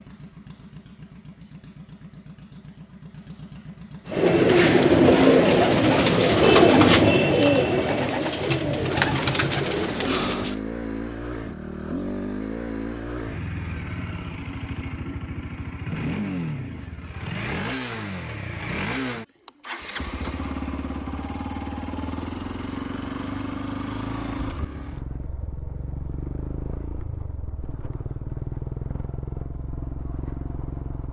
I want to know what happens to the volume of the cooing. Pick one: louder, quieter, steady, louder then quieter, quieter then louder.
quieter.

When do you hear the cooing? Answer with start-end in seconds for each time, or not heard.
4.0-10.6.